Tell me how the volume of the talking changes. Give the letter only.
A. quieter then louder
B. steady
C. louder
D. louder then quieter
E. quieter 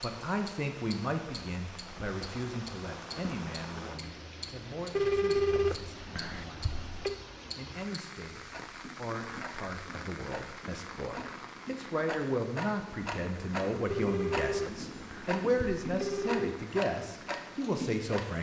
A.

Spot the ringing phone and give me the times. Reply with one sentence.
The ringing phone can be heard from 5.0 to 7.2 s and from 13.9 to 16.6 s.